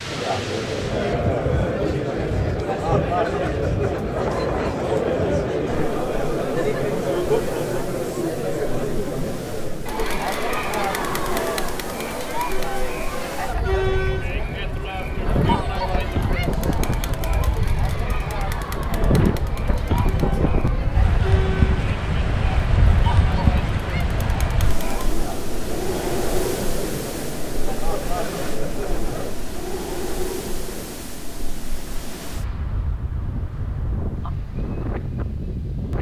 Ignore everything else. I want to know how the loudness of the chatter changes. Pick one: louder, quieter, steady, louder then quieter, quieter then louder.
quieter.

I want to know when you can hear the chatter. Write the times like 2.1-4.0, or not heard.
0.0-29.4.